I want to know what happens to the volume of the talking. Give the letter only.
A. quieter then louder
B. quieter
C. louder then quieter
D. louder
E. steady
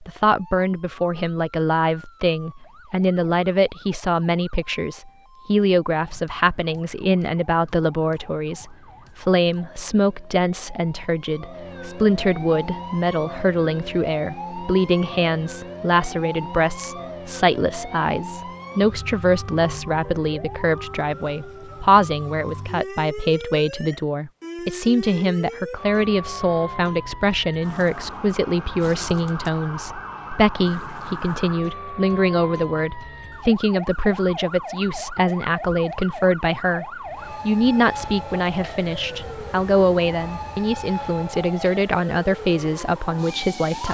E.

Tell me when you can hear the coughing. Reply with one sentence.
You can't hear the coughing here.